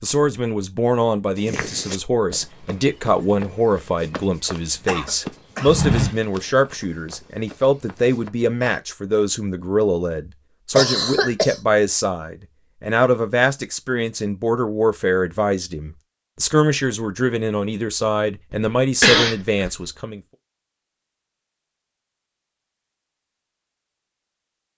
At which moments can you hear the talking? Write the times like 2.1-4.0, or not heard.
0.0-20.2.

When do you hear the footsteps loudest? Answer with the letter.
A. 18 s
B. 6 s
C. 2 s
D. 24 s
B.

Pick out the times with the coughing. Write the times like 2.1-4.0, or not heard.
4.8-6.0, 10.8-11.6, 18.5-19.8.